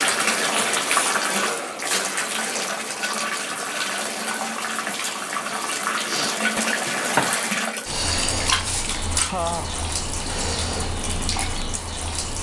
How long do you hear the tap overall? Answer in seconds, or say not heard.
12 s.